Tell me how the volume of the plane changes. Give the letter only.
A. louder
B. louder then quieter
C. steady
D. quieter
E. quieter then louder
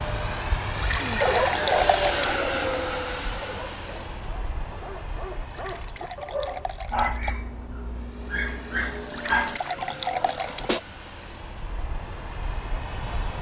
E.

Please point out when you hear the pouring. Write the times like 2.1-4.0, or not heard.
0.6-2.4, 5.3-7.3, 8.9-10.7.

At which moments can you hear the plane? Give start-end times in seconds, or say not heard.
0.0-13.3.